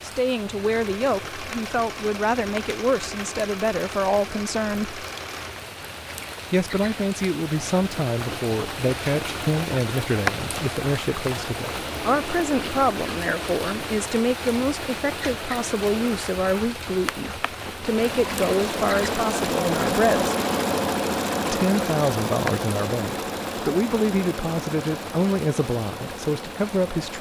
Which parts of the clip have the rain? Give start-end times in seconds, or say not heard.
0.0-27.1.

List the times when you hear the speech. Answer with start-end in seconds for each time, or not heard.
0.0-5.0, 6.5-20.4, 21.5-27.1.